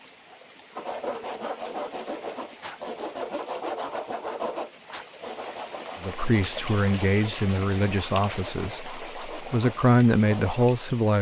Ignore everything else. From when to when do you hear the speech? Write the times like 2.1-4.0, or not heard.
6.0-11.1.